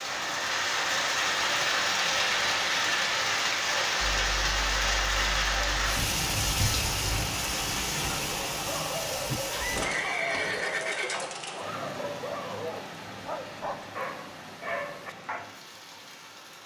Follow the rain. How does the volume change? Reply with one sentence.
The volume of the rain goes down.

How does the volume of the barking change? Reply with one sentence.
The loudness of the barking stays about the same.